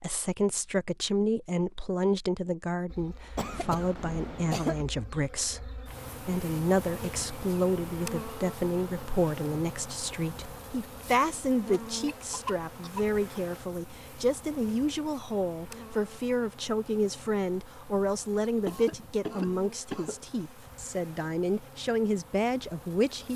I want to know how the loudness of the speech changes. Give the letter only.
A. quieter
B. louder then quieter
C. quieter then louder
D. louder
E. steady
E.